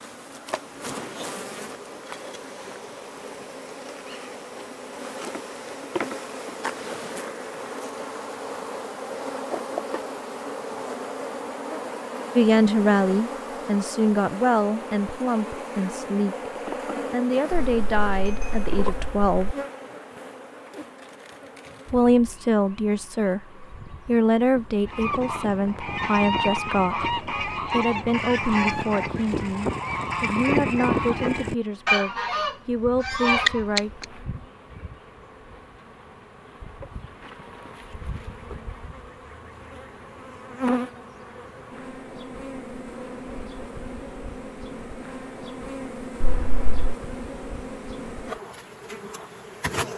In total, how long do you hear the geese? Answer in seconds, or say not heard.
9 s.